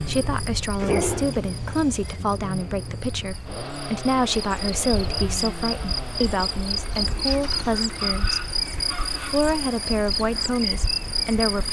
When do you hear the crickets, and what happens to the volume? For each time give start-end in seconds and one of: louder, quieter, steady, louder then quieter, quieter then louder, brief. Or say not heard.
0.0-11.6 louder.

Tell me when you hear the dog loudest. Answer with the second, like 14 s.
1 s.